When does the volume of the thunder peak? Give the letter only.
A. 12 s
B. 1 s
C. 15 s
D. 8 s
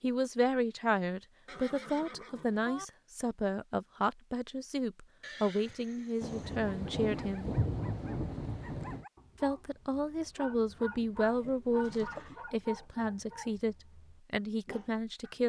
D.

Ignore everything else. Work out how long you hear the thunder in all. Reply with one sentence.
You can hear the thunder for 3 seconds altogether.